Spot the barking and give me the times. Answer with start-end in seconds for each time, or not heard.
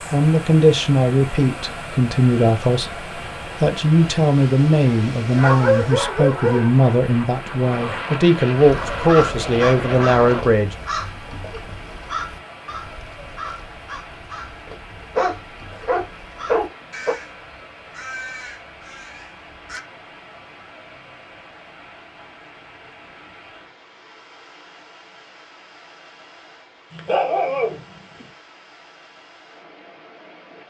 5.2-6.7, 15.2-17.1, 26.9-28.2.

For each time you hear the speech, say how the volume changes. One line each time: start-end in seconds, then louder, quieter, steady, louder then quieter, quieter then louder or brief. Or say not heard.
0.1-10.8 steady.